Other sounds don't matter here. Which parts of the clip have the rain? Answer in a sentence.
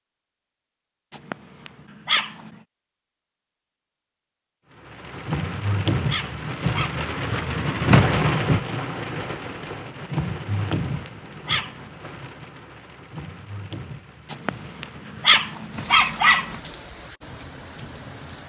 The rain can be heard from 4.7 to 18.4 s.